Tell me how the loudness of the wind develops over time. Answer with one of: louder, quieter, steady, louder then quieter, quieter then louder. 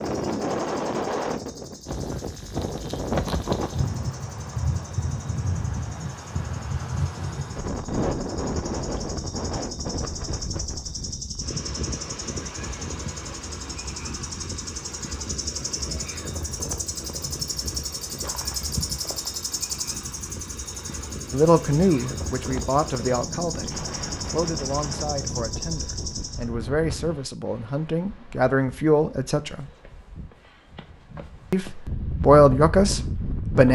quieter.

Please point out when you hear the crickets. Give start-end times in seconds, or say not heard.
0.0-26.4.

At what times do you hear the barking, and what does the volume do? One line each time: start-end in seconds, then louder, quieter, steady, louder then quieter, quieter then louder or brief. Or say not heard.
not heard.